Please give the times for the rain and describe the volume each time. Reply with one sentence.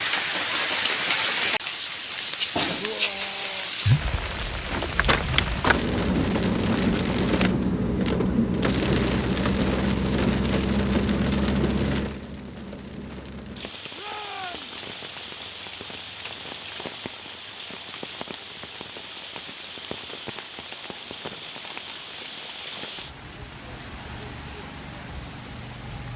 You can hear the rain from 0.0 to 26.1 s, getting quieter.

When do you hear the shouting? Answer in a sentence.
The shouting can be heard from 2.8 to 3.8 s and from 13.9 to 14.8 s.